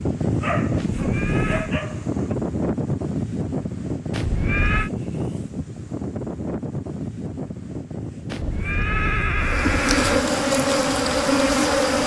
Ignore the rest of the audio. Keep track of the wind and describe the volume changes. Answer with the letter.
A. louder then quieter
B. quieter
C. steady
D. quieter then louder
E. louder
B.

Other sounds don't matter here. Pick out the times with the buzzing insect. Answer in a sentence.
You can hear the buzzing insect from 9.3 to 12.0 s.